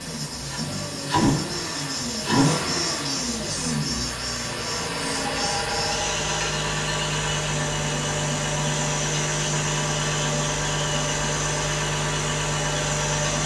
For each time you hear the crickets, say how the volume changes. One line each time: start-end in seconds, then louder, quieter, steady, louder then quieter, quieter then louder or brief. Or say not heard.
0.0-13.4 steady.